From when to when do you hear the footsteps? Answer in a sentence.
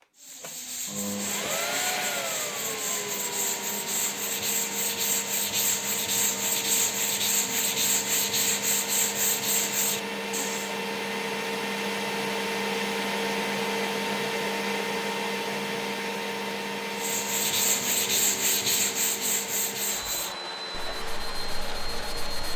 You can't hear the footsteps here.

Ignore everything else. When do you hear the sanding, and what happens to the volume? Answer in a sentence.
You can hear the sanding from 0.1 to 10.8 s, getting louder; and from 16.9 to 22.5 s, getting quieter.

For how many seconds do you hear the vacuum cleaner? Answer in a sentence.
You can hear the vacuum cleaner for 22 seconds altogether.